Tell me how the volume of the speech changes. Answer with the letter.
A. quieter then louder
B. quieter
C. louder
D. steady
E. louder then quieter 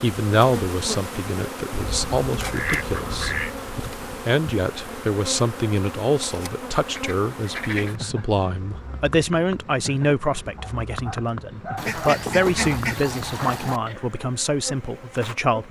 D.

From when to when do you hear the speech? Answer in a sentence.
You can hear the speech from 0.0 to 3.4 s and from 4.0 to 15.6 s.